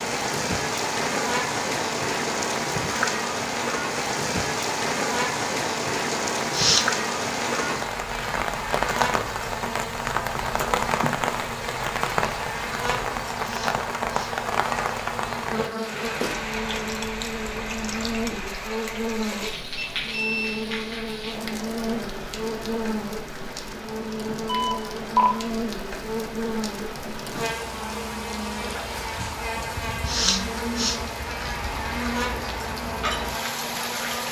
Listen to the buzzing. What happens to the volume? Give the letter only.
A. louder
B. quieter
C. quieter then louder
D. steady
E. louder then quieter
D.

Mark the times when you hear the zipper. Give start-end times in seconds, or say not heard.
not heard.